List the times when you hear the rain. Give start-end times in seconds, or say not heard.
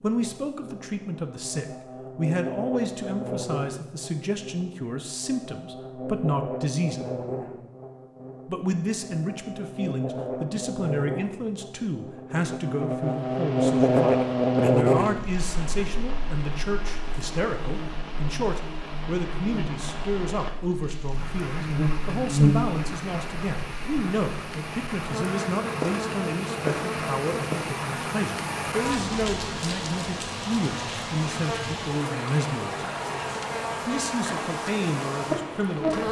13.0-36.0.